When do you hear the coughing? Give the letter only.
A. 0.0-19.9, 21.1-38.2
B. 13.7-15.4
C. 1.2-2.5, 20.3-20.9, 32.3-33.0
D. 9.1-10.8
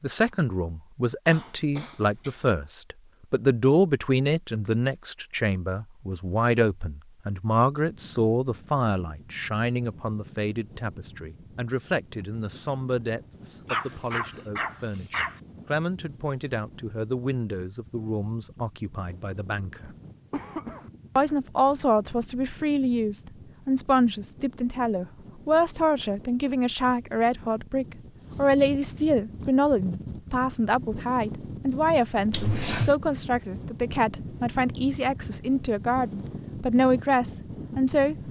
C.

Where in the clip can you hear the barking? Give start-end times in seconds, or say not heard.
13.7-15.4.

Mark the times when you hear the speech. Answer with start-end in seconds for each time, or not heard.
0.0-19.9, 21.1-38.2.